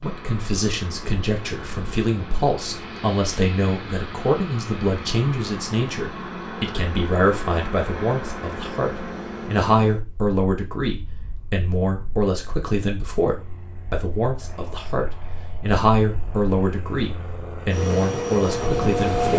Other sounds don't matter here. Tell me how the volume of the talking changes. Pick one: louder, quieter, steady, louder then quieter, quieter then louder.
steady.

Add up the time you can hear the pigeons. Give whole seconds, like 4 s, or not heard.
not heard.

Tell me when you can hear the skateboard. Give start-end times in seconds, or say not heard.
not heard.